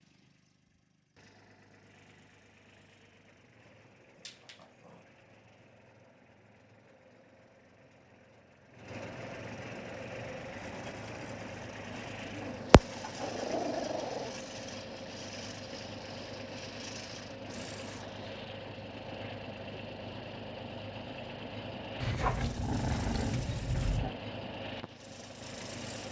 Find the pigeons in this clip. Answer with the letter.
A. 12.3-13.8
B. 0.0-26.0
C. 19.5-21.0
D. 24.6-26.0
A.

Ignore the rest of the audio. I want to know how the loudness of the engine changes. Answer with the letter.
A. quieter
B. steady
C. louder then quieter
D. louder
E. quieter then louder
D.